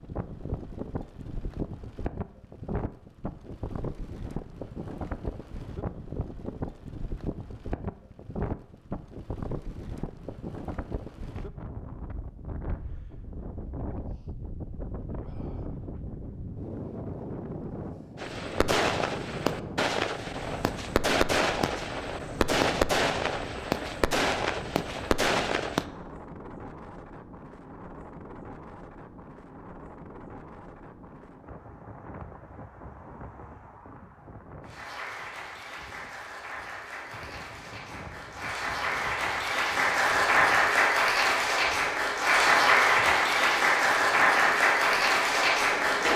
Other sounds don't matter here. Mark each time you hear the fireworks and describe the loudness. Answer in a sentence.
The fireworks can be heard from 18.1 to 25.9 s, at a steady volume.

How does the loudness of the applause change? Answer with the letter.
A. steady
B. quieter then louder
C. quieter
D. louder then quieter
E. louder
E.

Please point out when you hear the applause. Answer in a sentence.
You can hear the applause from 34.6 to 46.1 s.